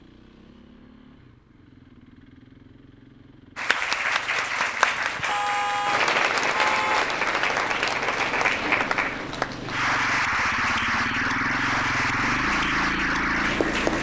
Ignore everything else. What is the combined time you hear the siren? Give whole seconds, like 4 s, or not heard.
not heard.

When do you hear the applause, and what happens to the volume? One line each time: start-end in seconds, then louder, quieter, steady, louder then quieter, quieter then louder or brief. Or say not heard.
3.5-13.9 steady.